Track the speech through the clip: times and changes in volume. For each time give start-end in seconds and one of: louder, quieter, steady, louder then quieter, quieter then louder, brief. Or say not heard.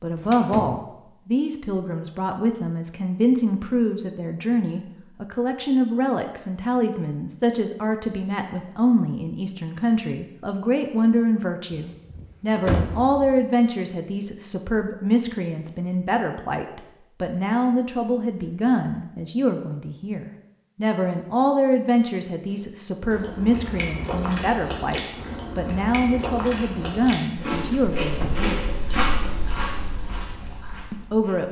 0.0-28.6 steady
30.9-31.4 brief.